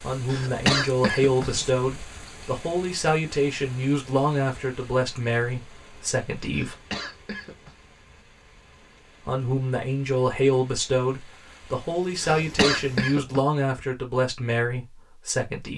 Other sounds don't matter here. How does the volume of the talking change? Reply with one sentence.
The volume of the talking stays about the same.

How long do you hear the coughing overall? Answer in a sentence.
The coughing can be heard for 4 seconds in total.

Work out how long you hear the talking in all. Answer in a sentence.
The talking can be heard for 13 seconds in total.